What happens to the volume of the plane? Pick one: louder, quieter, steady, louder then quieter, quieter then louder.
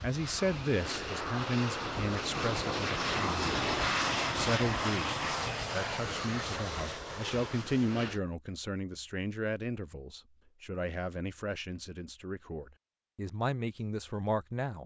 louder then quieter.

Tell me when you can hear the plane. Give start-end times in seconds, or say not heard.
0.0-8.2.